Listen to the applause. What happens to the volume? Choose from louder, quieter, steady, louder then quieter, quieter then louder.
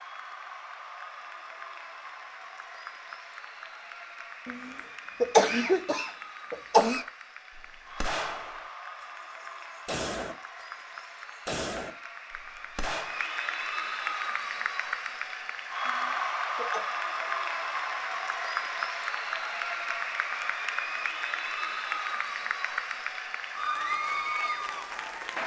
louder.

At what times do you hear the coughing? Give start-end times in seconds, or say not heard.
4.5-7.0, 15.8-16.9.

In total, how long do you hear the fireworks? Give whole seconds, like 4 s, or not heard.
4 s.